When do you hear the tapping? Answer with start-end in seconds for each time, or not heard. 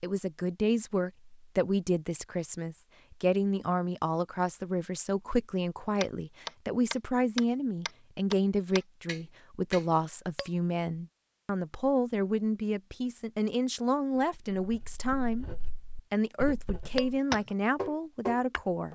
6.0-10.5, 16.9-18.9.